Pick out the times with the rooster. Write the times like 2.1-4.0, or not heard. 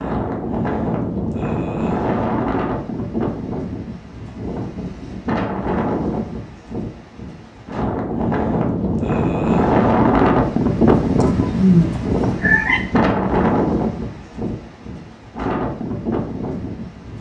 11.2-12.8.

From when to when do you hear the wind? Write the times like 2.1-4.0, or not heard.
0.0-17.1.